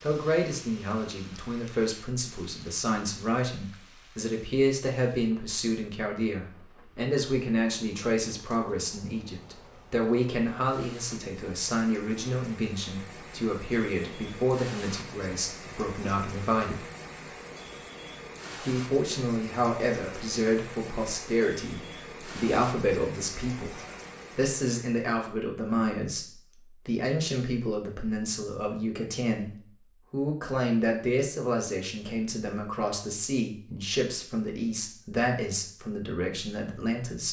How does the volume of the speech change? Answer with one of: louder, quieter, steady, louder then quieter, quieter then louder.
steady.